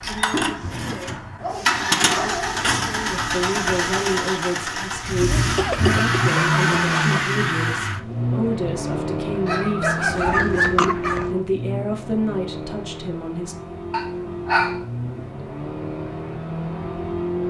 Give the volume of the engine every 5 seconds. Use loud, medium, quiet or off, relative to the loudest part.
loud, loud, medium, medium.